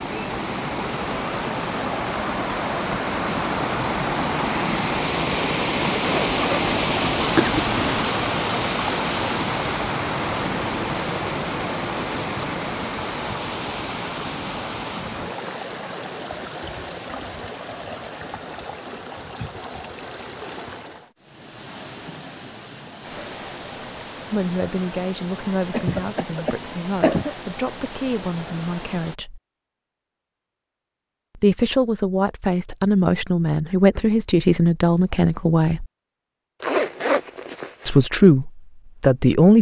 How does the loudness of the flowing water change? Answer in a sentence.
The volume of the flowing water goes down.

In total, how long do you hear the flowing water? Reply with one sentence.
The flowing water can be heard for 29 seconds in total.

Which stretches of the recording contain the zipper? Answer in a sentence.
You can hear the zipper from 6.0 to 6.6 s and from 36.6 to 38.0 s.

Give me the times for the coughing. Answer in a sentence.
The coughing can be heard from 7.3 to 8.1 s and from 25.7 to 27.4 s.